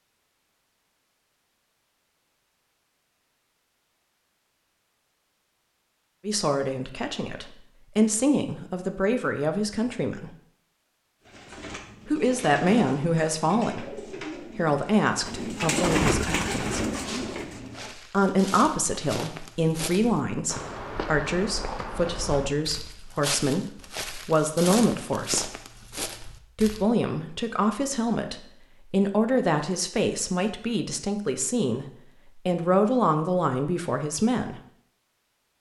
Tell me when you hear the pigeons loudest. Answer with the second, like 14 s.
16 s.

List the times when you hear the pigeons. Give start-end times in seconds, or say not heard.
11.2-17.9.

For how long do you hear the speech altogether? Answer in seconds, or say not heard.
24 s.